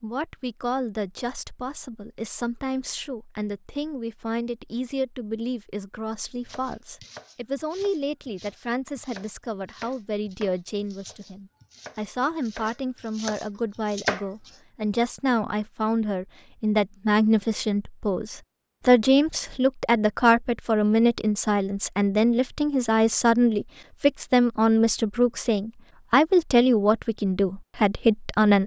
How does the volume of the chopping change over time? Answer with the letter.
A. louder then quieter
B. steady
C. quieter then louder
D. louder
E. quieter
D.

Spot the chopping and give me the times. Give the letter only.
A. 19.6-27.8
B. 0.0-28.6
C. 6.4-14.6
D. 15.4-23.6
C.